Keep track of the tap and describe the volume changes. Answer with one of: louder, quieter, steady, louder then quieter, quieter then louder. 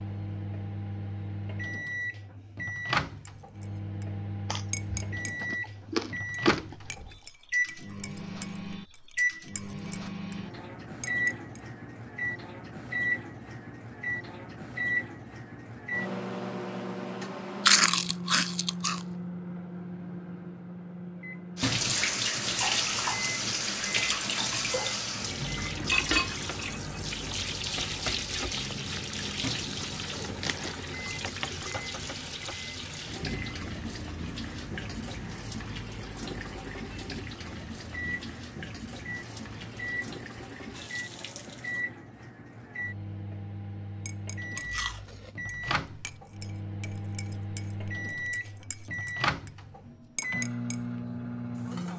quieter.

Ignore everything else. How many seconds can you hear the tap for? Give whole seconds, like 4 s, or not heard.
20 s.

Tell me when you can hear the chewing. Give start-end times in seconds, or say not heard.
4.5-7.2, 17.6-19.0, 28.5-30.8, 44.5-45.6.